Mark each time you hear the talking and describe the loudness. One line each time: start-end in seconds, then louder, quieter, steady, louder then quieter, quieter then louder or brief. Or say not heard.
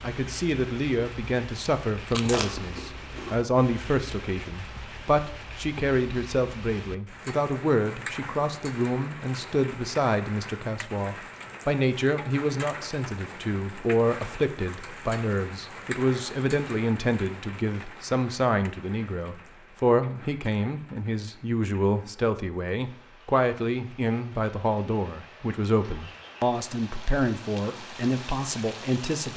0.0-29.3 steady.